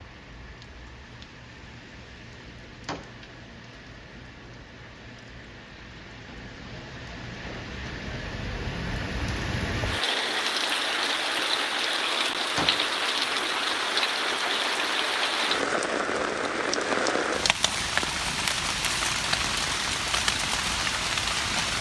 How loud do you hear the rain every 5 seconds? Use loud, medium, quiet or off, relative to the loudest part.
quiet, medium, loud, loud, loud.